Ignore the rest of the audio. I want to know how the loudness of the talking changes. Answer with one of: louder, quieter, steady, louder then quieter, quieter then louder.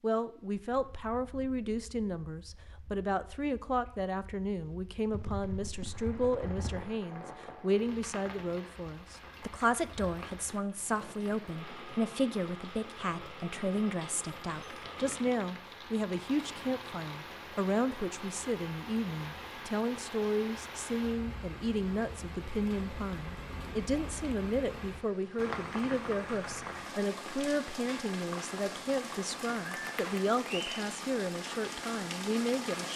steady.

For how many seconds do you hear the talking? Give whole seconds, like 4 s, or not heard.
33 s.